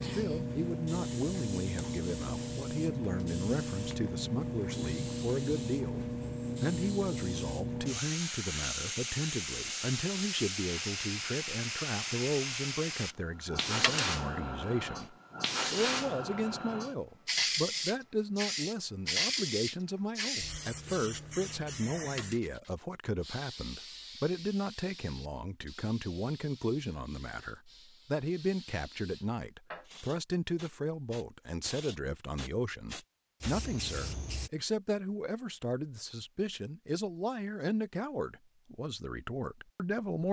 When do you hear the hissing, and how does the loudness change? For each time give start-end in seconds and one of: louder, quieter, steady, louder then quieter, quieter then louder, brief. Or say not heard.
0.0-34.5 quieter.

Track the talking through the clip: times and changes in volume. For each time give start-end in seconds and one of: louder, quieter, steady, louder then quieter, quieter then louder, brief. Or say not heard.
0.0-40.2 steady.